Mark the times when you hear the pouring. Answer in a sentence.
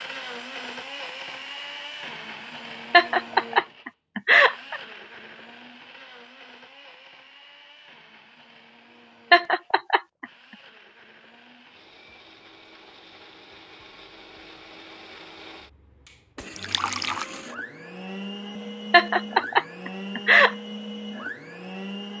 The pouring can be heard from 16.6 to 17.2 s.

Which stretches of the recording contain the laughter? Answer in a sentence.
You can hear the laughter from 2.9 to 4.8 s, from 9.3 to 10.2 s and from 18.9 to 20.6 s.